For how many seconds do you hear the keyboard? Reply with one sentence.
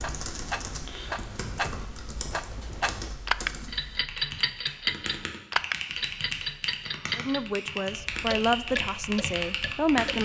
You can hear the keyboard for 10 seconds altogether.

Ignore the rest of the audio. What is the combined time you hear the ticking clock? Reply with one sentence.
The ticking clock can be heard for 10 seconds in total.